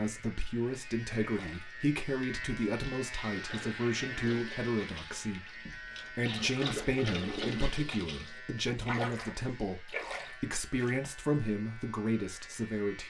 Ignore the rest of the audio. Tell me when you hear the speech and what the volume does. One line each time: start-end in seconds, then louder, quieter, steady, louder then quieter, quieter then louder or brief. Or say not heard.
0.0-13.0 steady.